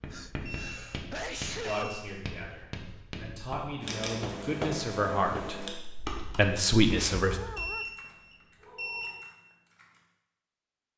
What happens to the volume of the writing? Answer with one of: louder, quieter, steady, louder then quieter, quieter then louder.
louder.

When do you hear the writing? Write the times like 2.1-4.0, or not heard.
0.0-5.6.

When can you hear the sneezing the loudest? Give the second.
2 s.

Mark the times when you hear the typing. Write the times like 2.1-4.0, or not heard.
3.8-10.1.